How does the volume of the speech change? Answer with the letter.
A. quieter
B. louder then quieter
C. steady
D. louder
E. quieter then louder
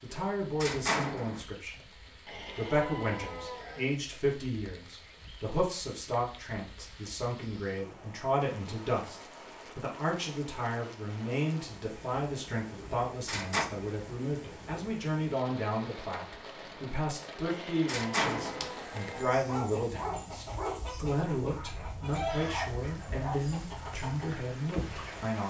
C.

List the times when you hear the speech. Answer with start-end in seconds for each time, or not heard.
0.0-25.4.